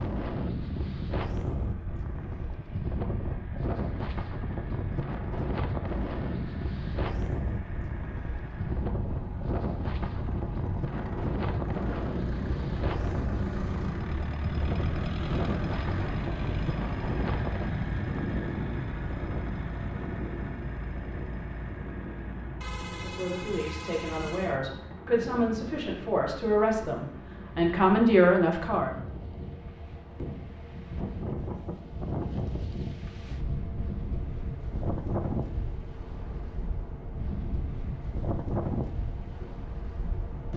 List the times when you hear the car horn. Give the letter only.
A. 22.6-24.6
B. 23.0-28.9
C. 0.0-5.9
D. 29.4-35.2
A.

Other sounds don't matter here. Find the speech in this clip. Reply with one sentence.
You can hear the speech from 23.0 to 28.9 s.